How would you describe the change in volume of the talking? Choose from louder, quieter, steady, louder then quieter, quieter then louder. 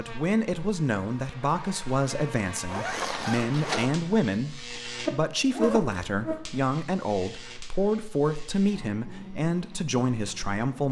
steady.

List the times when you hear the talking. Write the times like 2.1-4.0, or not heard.
0.0-10.8.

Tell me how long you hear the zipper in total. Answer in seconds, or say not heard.
2 s.